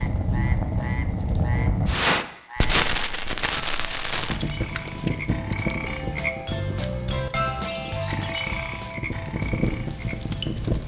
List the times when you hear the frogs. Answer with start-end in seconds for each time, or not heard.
0.0-10.8.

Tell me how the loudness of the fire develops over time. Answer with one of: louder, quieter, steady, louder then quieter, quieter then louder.
quieter then louder.